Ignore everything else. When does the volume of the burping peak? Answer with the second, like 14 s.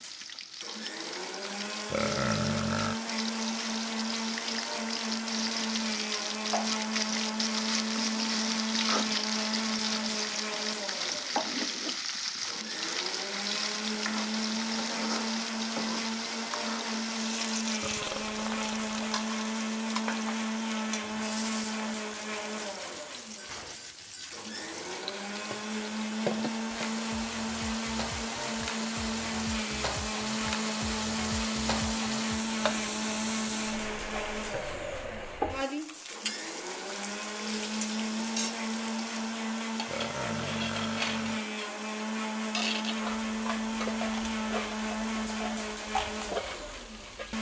2 s.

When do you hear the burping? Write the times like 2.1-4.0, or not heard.
1.9-3.0, 17.8-19.2, 39.9-41.4.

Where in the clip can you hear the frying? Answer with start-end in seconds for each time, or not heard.
0.0-47.3.